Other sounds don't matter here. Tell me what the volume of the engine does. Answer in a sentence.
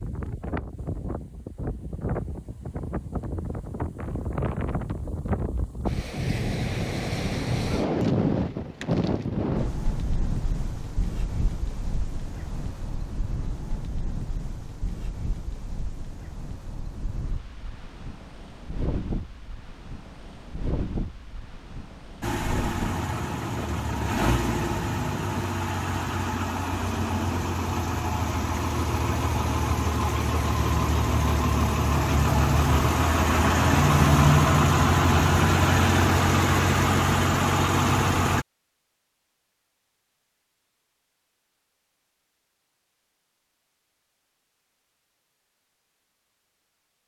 The loudness of the engine goes up.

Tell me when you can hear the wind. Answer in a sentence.
You can hear the wind from 0.0 to 25.5 s.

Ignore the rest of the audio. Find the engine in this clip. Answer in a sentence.
You can hear the engine from 22.2 to 38.5 s.